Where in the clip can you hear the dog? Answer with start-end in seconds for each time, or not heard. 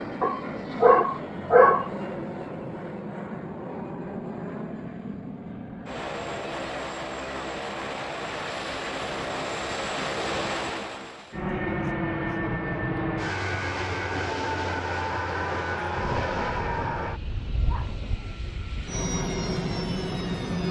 0.2-1.9, 15.9-17.9.